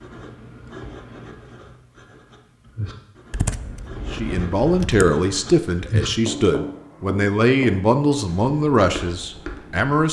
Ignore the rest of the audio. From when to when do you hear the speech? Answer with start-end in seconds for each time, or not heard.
4.1-10.0.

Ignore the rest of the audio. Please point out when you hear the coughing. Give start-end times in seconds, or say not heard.
not heard.